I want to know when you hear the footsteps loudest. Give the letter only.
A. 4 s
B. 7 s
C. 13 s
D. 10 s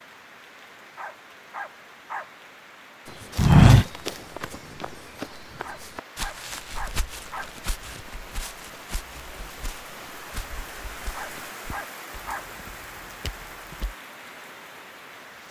A.